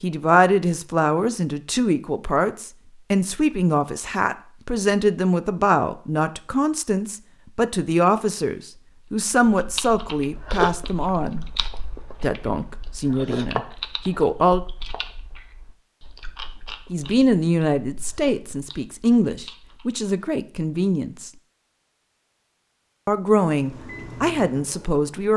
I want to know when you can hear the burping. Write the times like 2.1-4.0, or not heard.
not heard.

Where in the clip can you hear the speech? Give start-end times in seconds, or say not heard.
0.0-11.4, 12.2-14.6, 16.9-21.3, 23.1-25.3.